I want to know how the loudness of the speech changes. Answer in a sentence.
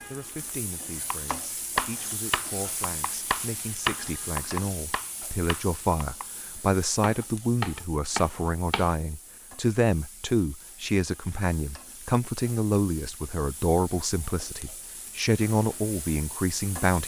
The loudness of the speech goes up.